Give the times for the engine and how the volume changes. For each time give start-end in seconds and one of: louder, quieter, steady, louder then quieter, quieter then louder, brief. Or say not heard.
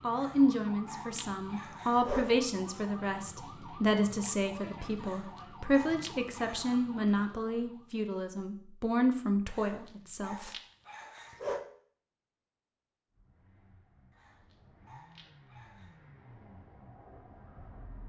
13.1-18.0 louder.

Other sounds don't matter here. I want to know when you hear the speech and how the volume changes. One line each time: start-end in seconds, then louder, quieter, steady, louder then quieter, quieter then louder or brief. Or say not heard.
0.0-10.5 steady.